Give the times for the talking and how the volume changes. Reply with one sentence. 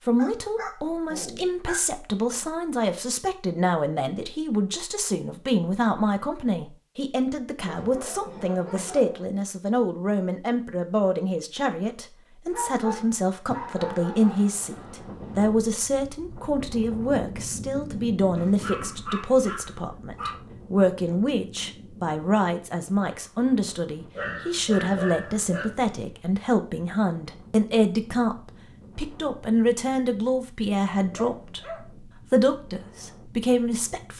You can hear the talking from 0.1 to 34.1 s, at a steady volume.